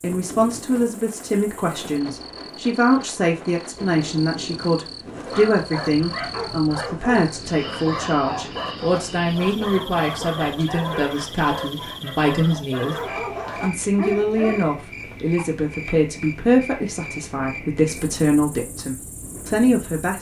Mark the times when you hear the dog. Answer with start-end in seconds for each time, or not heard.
5.1-15.6.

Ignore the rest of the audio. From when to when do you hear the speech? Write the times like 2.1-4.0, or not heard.
0.0-13.0, 13.6-20.1.